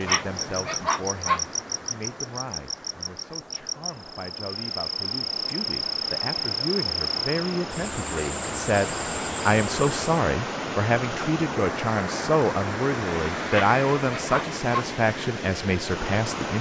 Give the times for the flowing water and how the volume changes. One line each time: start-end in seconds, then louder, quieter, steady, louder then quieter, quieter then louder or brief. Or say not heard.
0.0-16.5 louder.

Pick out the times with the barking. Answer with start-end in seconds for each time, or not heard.
0.1-1.4, 13.5-14.8.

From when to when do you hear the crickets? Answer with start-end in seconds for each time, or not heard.
0.0-10.1.